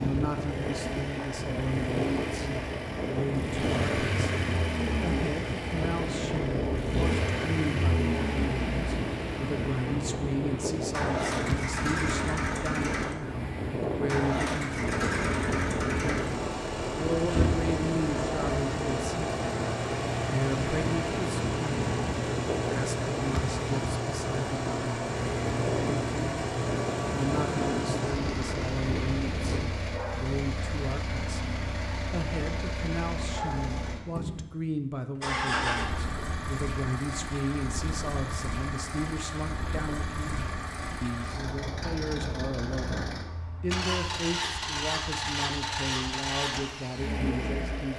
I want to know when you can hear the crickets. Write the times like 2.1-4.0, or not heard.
not heard.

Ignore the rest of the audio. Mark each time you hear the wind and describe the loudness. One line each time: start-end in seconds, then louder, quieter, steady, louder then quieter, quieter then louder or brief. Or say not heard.
0.0-29.6 steady.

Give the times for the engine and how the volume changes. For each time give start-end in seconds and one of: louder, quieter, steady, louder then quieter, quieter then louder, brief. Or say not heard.
0.0-47.9 steady.